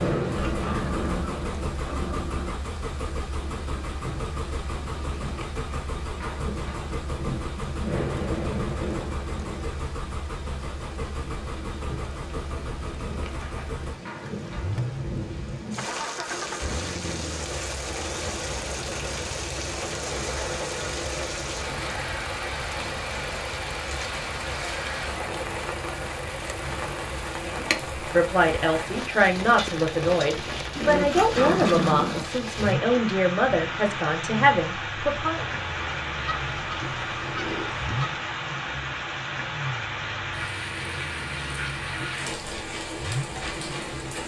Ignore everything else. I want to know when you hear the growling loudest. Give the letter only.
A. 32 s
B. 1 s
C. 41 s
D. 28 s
A.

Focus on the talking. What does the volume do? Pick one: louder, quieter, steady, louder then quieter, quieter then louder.
steady.